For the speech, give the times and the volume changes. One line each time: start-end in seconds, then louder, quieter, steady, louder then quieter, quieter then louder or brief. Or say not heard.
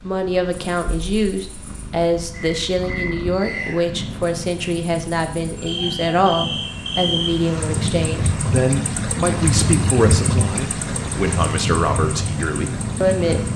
0.0-13.5 steady.